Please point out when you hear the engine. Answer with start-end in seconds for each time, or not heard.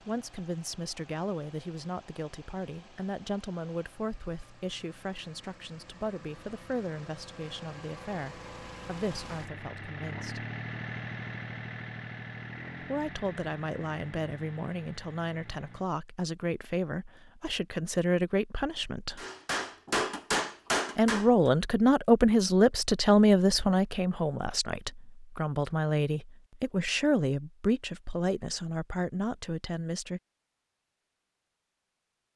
0.0-15.9.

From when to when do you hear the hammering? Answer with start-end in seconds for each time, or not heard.
19.1-21.3.